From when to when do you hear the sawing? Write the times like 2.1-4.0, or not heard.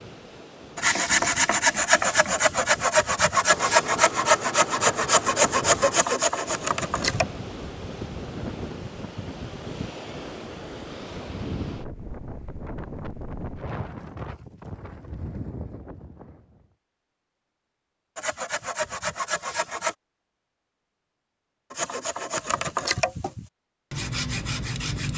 0.8-7.2, 18.1-19.9, 21.7-25.1.